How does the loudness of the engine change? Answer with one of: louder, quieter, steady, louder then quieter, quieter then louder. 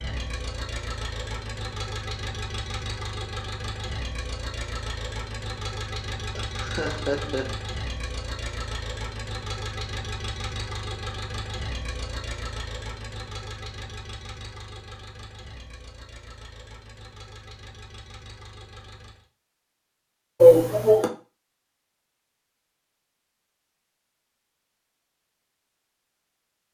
quieter.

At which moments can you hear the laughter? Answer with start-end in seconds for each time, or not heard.
6.3-7.5, 20.4-21.1.